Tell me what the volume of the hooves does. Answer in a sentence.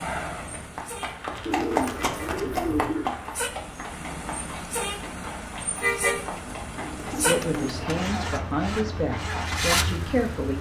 The volume of the hooves goes down.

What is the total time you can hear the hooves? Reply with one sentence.
The hooves can be heard for 10 seconds in total.